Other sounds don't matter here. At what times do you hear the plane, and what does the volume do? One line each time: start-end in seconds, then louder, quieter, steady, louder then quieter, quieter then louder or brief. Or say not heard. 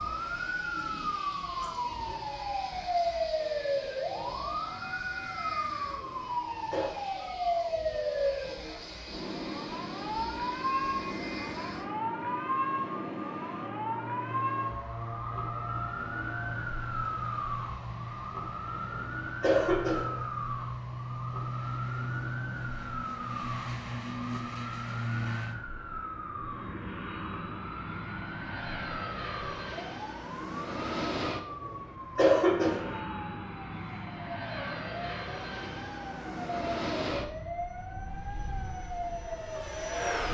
0.0-40.2 louder.